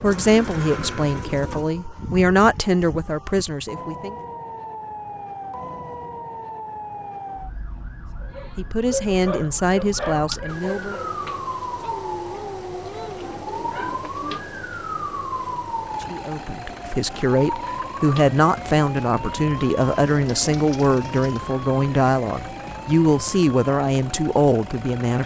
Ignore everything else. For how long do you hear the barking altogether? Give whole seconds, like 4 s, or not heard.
6 s.